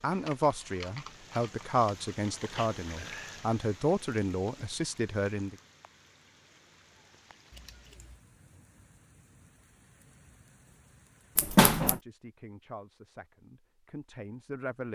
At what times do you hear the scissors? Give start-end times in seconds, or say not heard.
0.1-2.7, 7.5-8.2, 11.3-12.0.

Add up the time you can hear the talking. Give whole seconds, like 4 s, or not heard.
9 s.